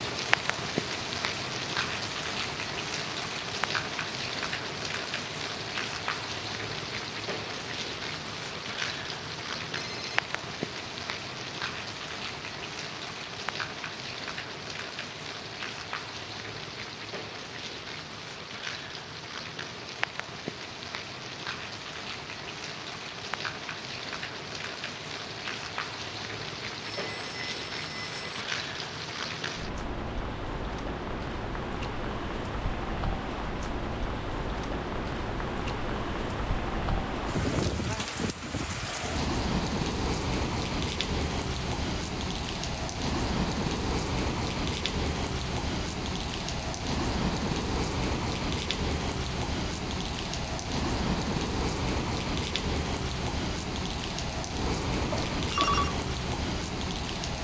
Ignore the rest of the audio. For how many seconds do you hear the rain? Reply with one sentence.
The rain can be heard for 57 seconds in total.